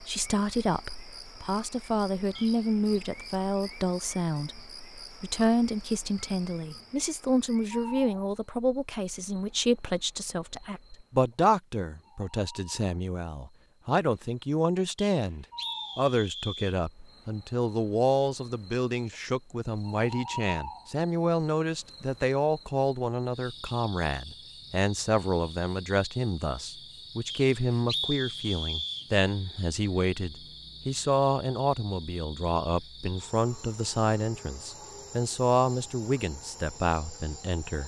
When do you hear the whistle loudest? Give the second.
28 s.